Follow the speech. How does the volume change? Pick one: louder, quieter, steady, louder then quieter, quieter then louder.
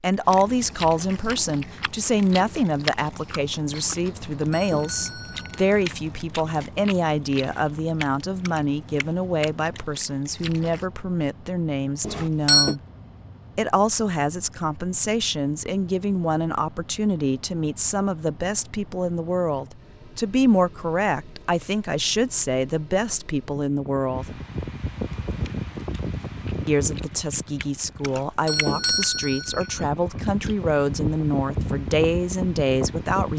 steady.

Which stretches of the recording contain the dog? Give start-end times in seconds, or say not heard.
not heard.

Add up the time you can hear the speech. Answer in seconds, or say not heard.
30 s.